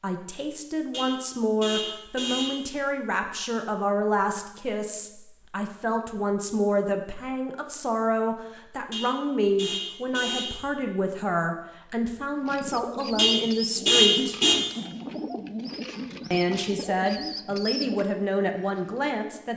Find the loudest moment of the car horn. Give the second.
14 s.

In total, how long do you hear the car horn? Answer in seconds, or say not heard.
5 s.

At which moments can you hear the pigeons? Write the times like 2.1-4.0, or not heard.
12.4-19.4.